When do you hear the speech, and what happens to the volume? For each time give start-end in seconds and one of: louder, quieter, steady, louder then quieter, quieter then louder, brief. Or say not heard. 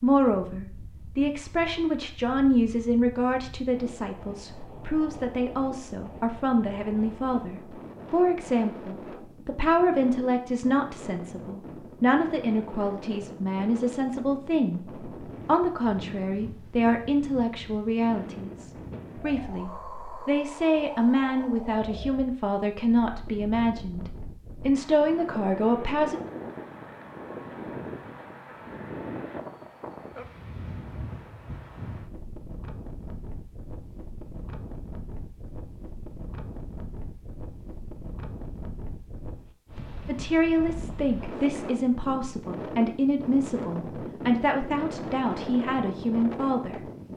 0.0-26.2 steady
40.0-46.8 steady.